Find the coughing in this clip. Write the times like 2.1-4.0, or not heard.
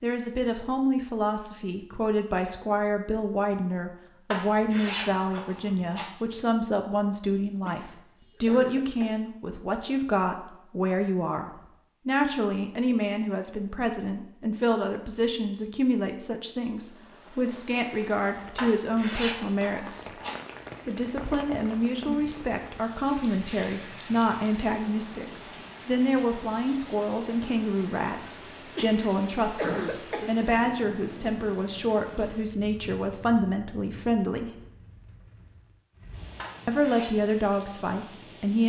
7.6-9.2, 28.8-30.3.